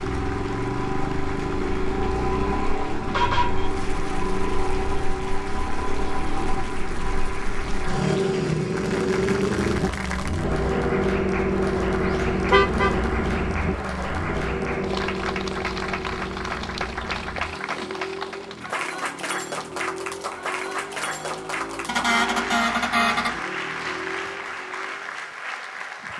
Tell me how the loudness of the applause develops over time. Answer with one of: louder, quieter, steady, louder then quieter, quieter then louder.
louder.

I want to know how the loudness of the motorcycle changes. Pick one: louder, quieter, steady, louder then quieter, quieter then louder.
quieter.